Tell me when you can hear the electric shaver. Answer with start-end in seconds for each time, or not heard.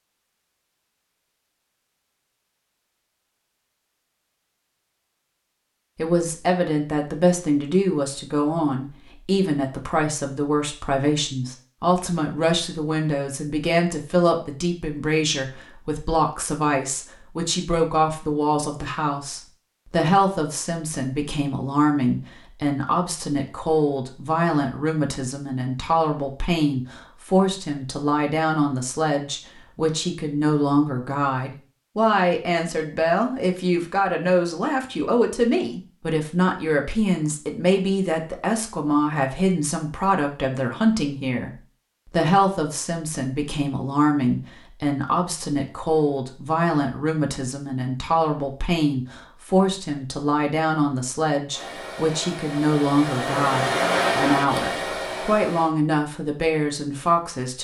not heard.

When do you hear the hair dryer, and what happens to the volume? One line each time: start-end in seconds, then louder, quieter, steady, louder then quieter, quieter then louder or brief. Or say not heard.
51.5-55.8 louder then quieter.